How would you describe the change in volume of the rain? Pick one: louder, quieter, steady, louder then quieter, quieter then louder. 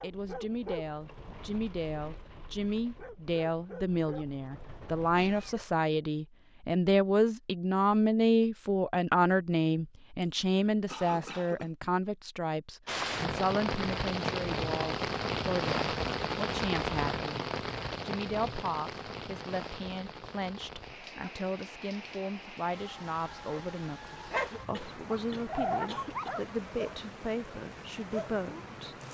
quieter.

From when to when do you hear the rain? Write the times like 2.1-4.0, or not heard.
12.8-29.0.